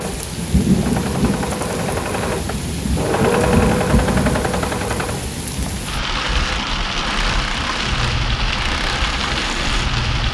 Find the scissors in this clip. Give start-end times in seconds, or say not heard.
not heard.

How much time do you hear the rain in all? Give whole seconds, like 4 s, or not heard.
10 s.